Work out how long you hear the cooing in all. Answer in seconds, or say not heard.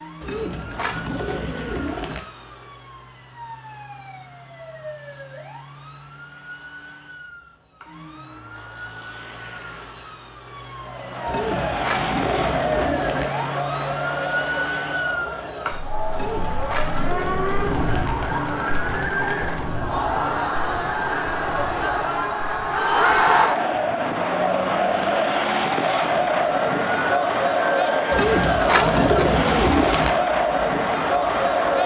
8 s.